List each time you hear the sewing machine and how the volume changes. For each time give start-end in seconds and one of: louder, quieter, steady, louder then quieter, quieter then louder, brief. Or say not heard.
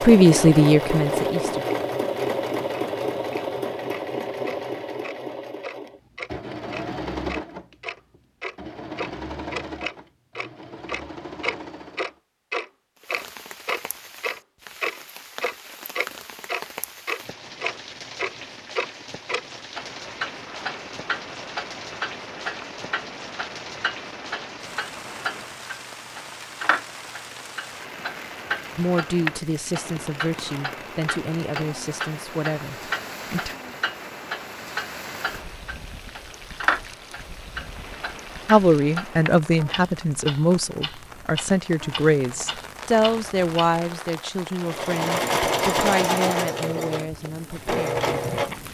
0.0-12.2 quieter
44.6-48.6 quieter then louder.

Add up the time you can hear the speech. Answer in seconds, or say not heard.
16 s.